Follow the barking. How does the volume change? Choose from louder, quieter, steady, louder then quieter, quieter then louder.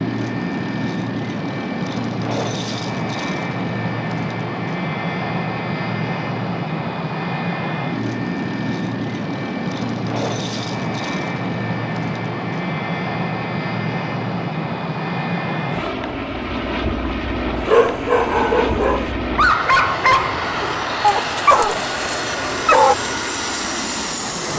quieter.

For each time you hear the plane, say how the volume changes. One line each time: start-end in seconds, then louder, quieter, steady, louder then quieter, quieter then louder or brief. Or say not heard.
0.0-24.5 steady.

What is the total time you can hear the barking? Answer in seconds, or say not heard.
5 s.